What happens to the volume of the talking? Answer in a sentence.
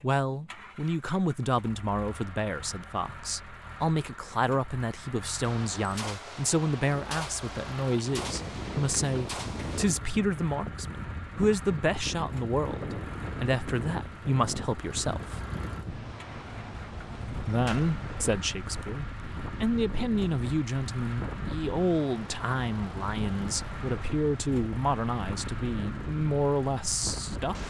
The loudness of the talking stays about the same.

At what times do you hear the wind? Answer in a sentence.
The wind can be heard from 8.1 to 27.6 s.